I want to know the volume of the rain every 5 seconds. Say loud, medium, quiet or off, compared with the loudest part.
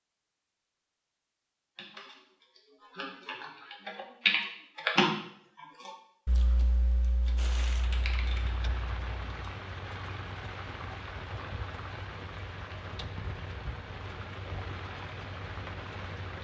off, loud, loud, loud.